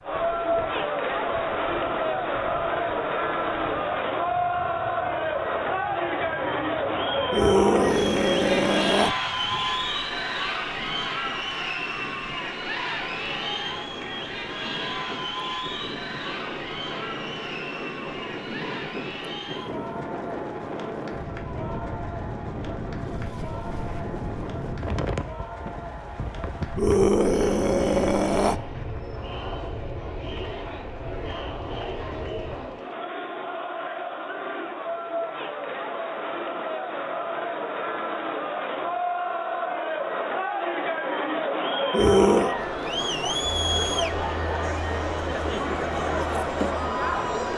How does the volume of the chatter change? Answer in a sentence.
The volume of the chatter goes down, then up.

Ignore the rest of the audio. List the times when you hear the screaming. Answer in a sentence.
The screaming can be heard from 7.3 to 9.2 s, from 26.8 to 28.6 s and from 41.9 to 42.5 s.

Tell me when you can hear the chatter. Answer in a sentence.
The chatter can be heard from 0.0 to 47.5 s.